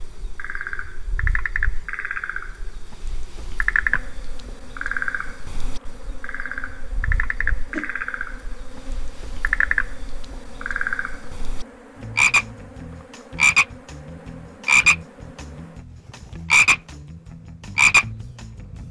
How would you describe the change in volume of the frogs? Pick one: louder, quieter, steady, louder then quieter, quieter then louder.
louder.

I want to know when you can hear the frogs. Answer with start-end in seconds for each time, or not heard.
0.0-18.8.